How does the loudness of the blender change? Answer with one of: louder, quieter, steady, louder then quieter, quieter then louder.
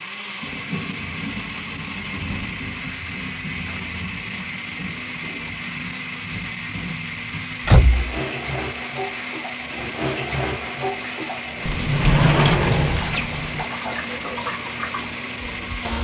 steady.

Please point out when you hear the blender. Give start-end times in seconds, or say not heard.
0.0-15.9.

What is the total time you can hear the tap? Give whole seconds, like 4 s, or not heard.
16 s.